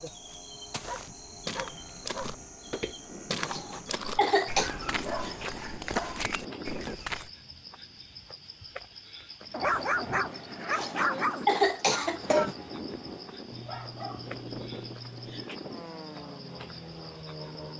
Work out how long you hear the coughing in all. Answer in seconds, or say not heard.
3 s.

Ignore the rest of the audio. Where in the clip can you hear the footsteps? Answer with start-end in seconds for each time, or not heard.
0.2-7.3.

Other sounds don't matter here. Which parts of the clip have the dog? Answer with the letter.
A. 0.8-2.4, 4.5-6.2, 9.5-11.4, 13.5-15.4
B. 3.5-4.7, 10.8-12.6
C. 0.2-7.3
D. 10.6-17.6
A.